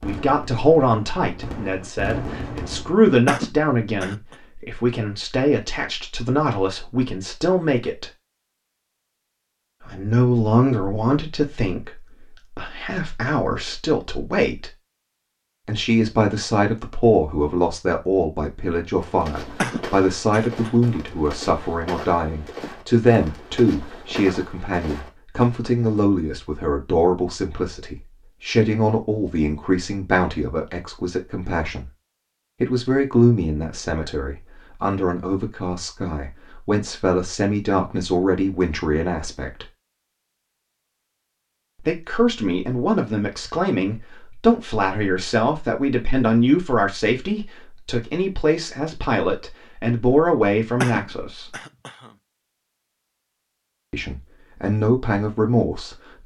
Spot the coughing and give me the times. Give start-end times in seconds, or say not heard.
3.2-4.3, 19.6-20.7, 50.8-52.1.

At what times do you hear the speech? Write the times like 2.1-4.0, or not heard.
0.0-8.1, 9.8-14.7, 15.7-31.9, 32.6-39.6, 41.8-51.5, 53.9-56.2.